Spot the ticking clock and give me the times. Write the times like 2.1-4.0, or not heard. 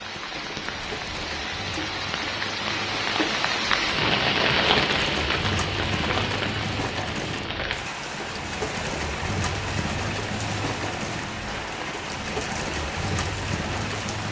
not heard.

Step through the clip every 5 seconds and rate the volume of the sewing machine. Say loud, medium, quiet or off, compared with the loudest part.
medium, loud, loud.